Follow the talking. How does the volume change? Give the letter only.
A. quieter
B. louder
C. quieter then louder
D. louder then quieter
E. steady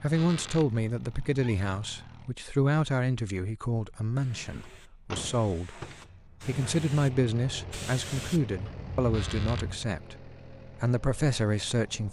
E.